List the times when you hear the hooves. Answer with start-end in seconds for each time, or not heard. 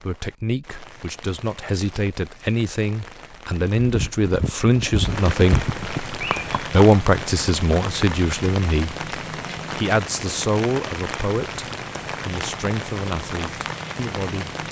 3.8-6.8.